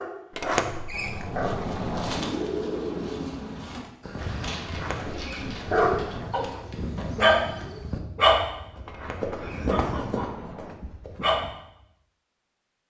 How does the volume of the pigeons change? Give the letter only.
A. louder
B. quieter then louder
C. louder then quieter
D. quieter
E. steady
D.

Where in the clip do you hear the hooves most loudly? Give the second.
10 s.